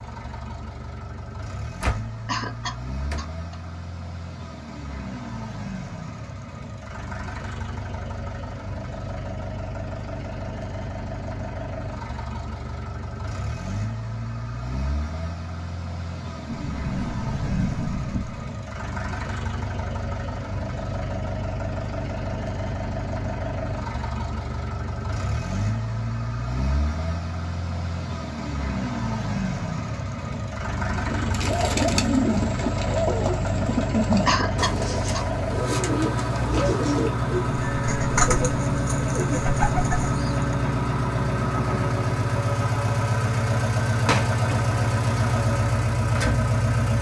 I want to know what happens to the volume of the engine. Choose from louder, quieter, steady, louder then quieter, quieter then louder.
louder.